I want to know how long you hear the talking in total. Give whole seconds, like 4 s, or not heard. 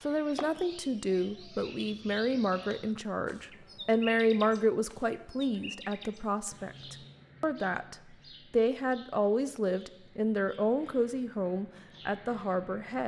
13 s.